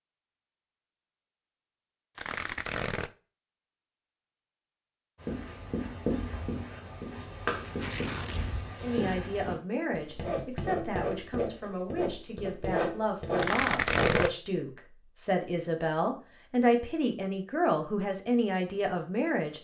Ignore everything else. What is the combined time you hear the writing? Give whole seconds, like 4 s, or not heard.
9 s.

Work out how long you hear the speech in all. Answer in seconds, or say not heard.
11 s.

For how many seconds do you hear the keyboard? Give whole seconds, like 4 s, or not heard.
not heard.